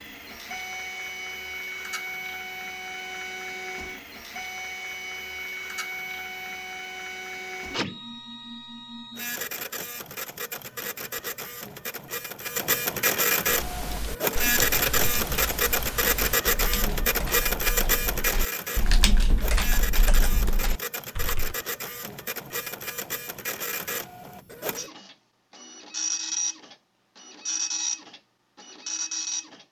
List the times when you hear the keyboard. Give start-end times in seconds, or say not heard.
13.4-21.6.